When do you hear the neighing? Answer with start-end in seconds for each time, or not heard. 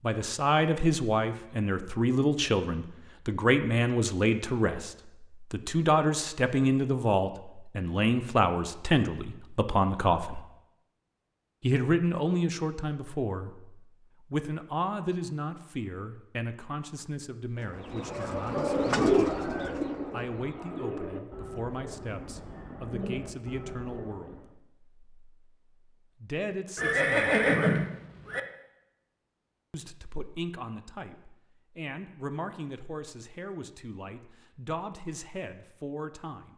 26.8-28.4.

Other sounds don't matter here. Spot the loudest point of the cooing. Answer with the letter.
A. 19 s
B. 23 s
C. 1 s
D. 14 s
A.